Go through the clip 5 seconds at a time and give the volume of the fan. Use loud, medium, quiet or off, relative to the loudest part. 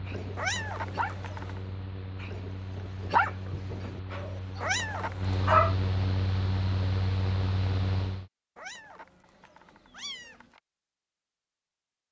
medium, loud, off.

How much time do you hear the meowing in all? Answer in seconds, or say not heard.
4 s.